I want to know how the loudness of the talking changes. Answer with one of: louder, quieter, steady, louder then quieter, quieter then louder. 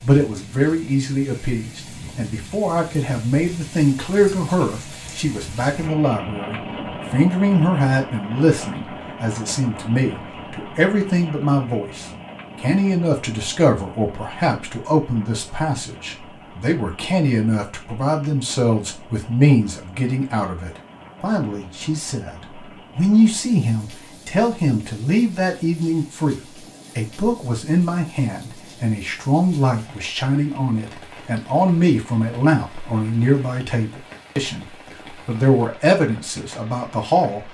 steady.